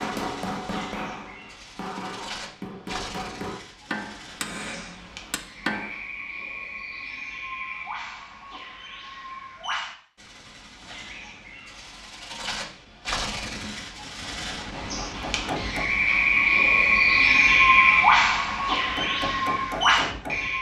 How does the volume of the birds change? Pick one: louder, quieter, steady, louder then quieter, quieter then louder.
louder.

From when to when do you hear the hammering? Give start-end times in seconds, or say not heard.
0.0-6.0, 14.1-15.9, 18.8-20.5.